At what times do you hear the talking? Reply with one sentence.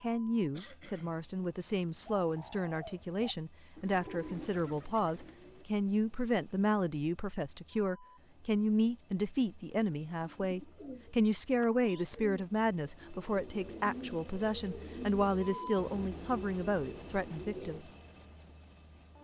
The talking can be heard from 0.0 to 17.9 s.